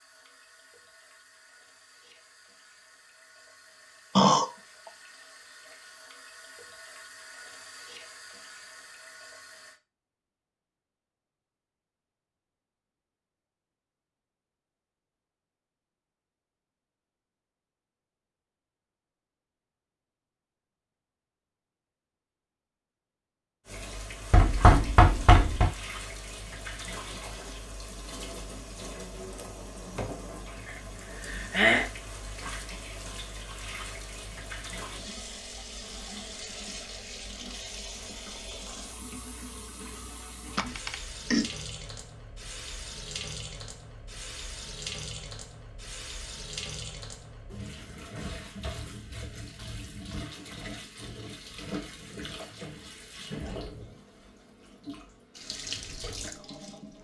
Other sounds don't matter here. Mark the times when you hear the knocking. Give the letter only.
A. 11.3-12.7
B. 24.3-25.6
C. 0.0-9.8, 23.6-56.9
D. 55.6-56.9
B.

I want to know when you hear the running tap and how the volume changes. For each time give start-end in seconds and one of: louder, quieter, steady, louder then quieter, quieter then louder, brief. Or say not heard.
0.0-9.8 louder
23.6-56.9 steady.